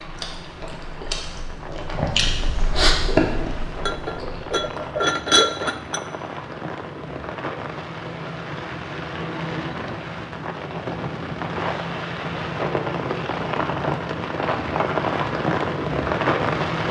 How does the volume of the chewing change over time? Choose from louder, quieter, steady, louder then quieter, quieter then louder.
louder then quieter.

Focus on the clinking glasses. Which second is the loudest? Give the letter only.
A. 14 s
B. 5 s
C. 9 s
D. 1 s
B.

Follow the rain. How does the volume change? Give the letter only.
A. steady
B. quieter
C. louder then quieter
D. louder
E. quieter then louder
D.